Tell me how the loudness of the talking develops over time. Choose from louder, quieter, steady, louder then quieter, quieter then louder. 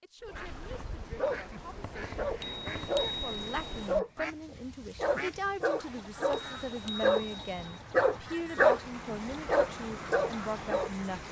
louder.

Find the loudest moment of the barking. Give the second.
9 s.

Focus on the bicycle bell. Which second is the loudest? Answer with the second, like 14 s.
3 s.